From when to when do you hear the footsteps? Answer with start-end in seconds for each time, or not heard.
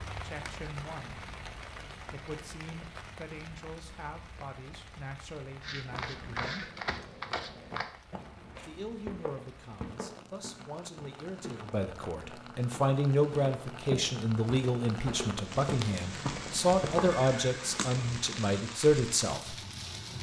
5.6-17.2.